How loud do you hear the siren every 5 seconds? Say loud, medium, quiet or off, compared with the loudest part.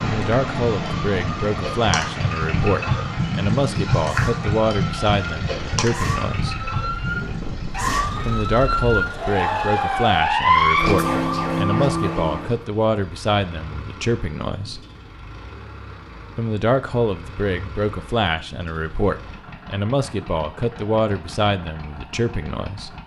medium, medium, loud, off, off.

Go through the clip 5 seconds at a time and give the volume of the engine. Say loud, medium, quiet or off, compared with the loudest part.
loud, medium, quiet, quiet, quiet.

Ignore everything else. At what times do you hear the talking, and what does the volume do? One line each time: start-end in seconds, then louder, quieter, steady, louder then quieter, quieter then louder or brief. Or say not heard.
0.0-6.6 steady
8.2-14.8 steady
16.4-22.9 steady.